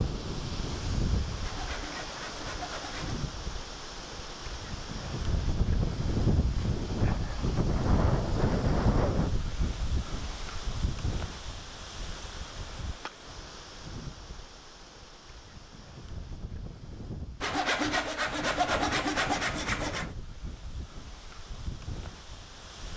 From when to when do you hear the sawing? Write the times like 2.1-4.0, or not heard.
1.4-3.2, 17.4-20.1.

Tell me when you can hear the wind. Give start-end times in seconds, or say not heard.
0.0-22.9.